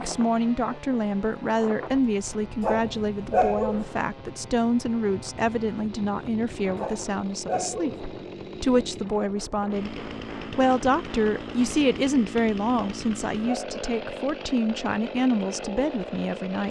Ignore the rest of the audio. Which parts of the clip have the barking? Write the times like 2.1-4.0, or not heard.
2.6-3.9, 6.8-8.1, 12.8-13.8.